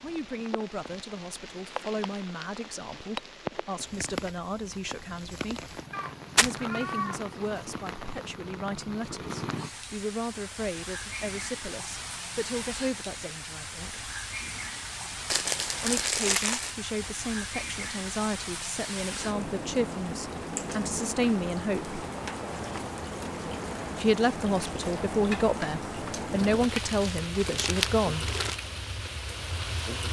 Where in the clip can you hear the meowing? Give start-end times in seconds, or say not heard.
5.9-7.2.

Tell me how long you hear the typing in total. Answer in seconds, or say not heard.
not heard.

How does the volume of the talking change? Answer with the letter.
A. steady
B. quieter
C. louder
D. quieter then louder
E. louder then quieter
C.